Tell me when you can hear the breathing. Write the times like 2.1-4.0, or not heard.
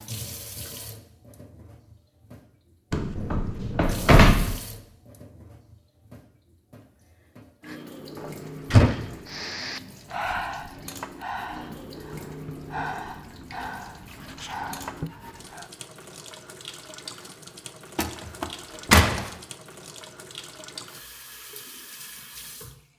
9.2-15.7.